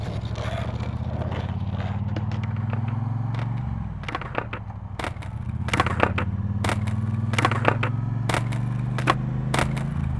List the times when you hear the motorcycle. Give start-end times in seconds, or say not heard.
0.0-10.1.